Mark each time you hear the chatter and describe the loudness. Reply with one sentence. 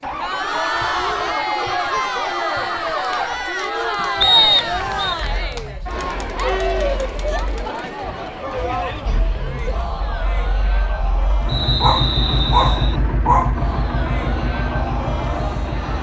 You can hear the chatter from 0.0 to 15.9 s, getting quieter.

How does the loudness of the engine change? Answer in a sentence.
The loudness of the engine goes down, then up.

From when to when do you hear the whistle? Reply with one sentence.
You can hear the whistle from 4.2 to 5.2 s and from 11.4 to 13.0 s.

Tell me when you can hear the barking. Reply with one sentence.
You can hear the barking from 11.3 to 13.6 s.